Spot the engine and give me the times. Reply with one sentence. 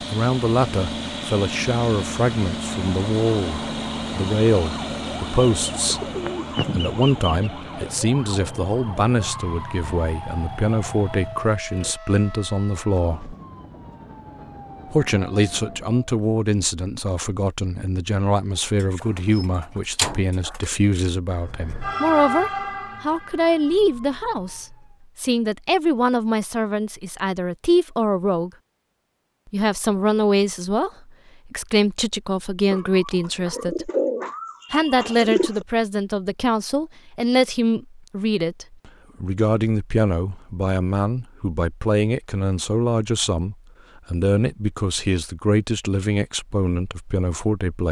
You can hear the engine from 0.0 to 11.9 s.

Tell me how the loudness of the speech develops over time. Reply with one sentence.
The volume of the speech stays about the same.